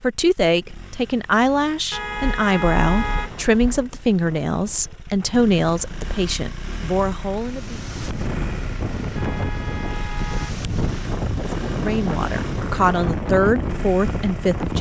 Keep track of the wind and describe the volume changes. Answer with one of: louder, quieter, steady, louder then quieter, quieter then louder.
louder.